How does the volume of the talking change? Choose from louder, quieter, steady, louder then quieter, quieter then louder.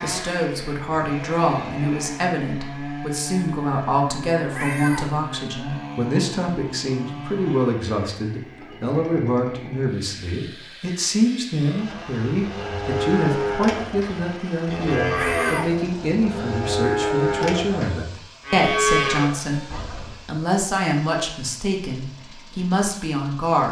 steady.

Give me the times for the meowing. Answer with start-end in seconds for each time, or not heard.
4.5-5.1, 15.1-15.7.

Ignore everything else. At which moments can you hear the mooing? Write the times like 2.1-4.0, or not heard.
11.6-20.2.